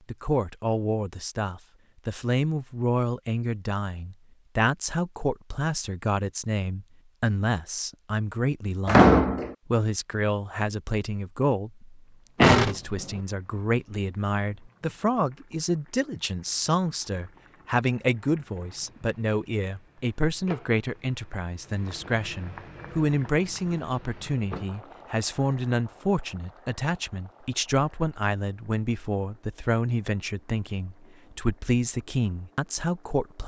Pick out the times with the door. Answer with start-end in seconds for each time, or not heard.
8.8-9.6, 12.4-13.2, 23.8-24.6.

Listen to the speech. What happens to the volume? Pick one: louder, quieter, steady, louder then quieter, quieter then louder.
steady.